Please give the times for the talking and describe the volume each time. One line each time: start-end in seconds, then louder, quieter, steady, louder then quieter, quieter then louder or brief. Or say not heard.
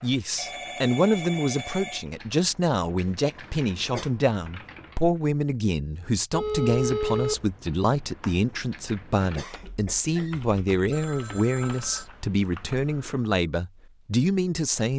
0.0-14.9 steady.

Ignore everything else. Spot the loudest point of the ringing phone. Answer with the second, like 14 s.
7 s.